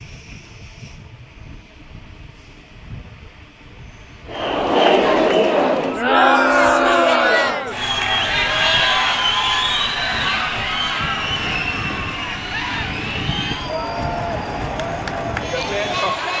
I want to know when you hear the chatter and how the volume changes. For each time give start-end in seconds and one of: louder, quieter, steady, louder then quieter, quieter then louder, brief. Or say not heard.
4.2-16.3 quieter.